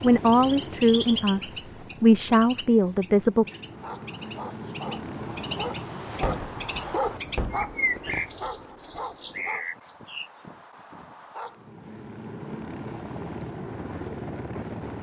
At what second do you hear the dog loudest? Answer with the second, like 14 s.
7 s.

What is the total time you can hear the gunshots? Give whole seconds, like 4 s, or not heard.
3 s.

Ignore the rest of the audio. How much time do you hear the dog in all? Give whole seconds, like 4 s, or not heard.
8 s.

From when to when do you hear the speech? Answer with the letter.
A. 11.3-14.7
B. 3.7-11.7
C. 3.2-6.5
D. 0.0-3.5
D.